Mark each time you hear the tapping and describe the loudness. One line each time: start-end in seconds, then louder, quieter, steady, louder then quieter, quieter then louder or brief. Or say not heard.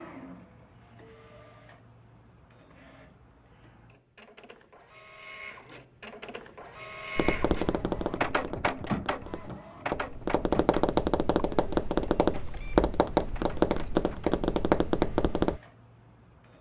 7.2-15.6 louder.